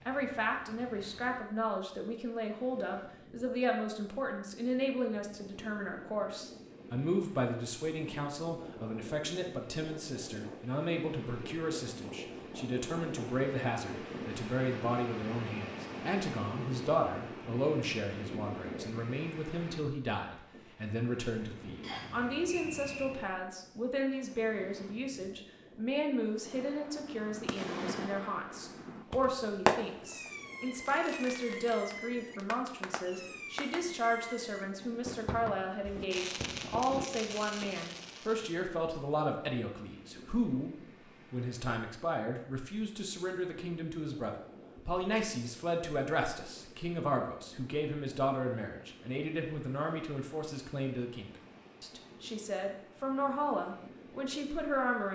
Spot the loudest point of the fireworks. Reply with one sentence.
The loudest moment of the fireworks is at 30 seconds.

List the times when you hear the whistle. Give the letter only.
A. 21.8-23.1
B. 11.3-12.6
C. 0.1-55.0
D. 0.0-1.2
A.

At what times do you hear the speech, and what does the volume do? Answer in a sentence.
You can hear the speech from 0.1 to 55.0 s, at a steady volume.